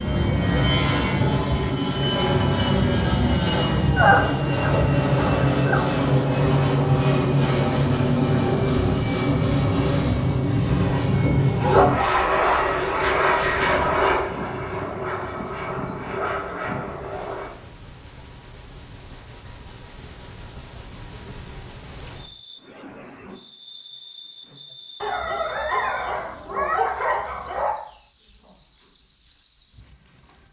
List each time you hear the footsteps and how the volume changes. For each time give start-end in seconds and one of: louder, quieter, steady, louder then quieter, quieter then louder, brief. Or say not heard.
not heard.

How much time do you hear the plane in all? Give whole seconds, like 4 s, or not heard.
18 s.